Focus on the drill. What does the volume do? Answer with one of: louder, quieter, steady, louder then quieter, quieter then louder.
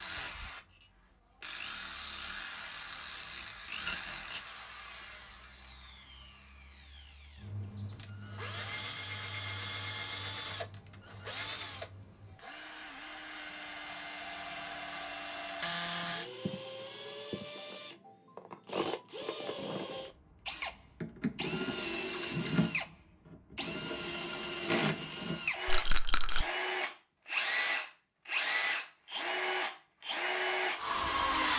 louder.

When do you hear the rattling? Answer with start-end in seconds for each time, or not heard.
25.6-26.4.